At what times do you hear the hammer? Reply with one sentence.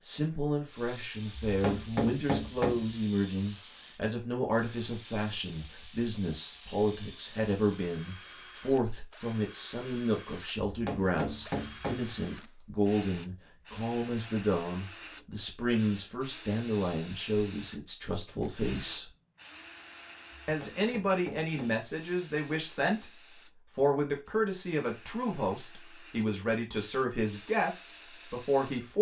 The hammer can be heard from 1.4 to 2.9 s, from 10.7 to 12.2 s and from 20.4 to 21.9 s.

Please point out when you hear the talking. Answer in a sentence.
The talking can be heard from 0.0 to 19.1 s and from 20.4 to 28.9 s.